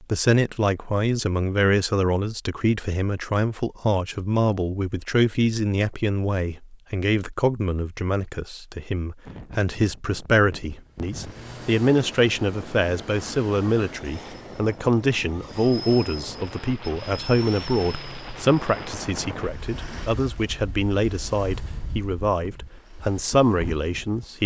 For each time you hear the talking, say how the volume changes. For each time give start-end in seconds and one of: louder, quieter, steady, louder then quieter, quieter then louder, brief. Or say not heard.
0.0-24.4 steady.